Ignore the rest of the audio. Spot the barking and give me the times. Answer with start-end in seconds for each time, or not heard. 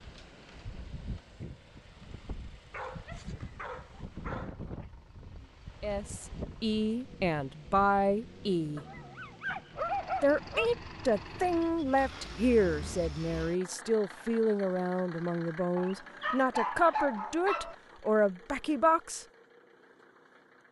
2.7-4.5, 8.8-10.7, 15.8-17.8.